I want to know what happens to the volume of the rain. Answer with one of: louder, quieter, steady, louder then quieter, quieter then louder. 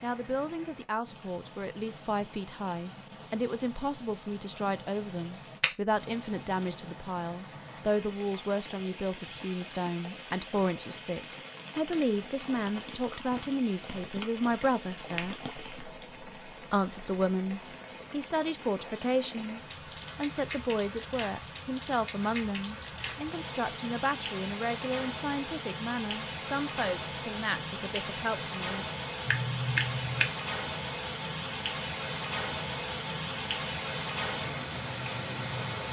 louder.